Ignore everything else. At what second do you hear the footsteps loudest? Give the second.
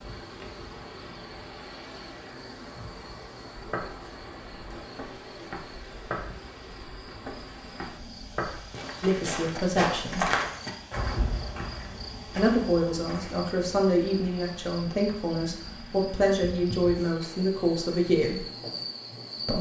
10 s.